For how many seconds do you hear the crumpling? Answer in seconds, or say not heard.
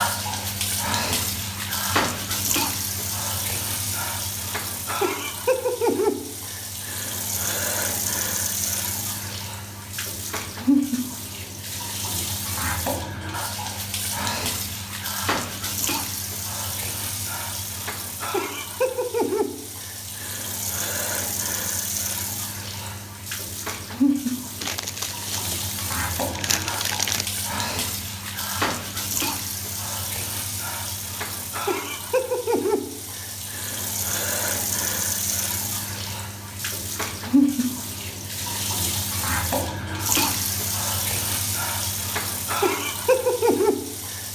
3 s.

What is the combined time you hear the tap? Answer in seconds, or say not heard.
44 s.